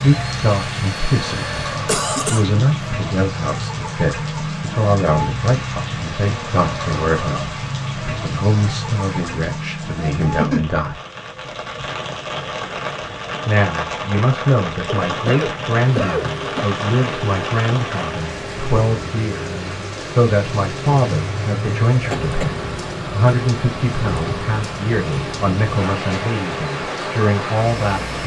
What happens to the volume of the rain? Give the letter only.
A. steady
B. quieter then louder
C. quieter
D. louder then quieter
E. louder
A.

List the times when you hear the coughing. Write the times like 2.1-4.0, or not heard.
1.9-2.5, 14.9-16.6, 22.0-22.6.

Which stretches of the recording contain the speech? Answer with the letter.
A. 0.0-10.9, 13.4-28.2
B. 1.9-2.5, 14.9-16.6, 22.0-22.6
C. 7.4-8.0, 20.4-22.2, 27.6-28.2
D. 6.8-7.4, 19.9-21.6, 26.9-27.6
A.